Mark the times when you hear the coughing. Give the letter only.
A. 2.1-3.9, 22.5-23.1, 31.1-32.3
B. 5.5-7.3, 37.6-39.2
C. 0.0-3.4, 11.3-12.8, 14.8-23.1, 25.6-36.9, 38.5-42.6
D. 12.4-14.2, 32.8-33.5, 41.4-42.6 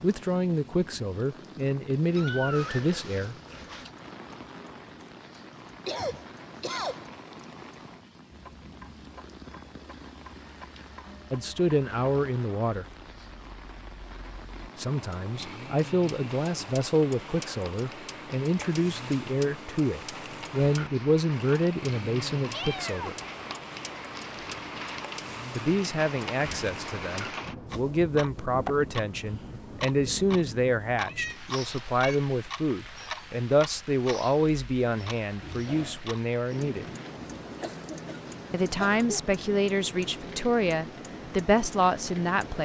B.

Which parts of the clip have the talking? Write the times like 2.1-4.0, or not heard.
0.0-3.4, 11.3-12.8, 14.8-23.1, 25.6-36.9, 38.5-42.6.